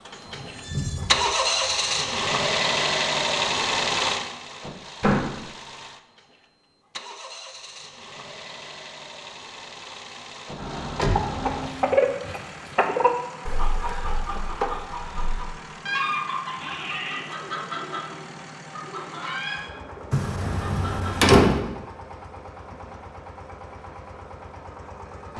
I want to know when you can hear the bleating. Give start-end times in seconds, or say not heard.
0.2-2.2, 16.5-17.4.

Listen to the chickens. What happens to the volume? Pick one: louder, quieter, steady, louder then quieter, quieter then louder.
quieter.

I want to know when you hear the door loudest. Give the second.
21 s.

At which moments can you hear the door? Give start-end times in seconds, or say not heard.
5.0-5.5, 10.6-11.7, 20.1-21.6.